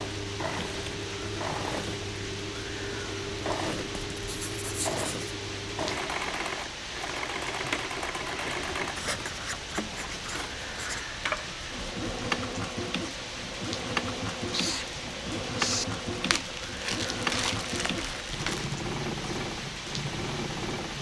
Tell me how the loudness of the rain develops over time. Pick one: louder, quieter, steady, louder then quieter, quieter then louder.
steady.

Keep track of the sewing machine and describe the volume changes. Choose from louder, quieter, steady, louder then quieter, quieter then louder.
steady.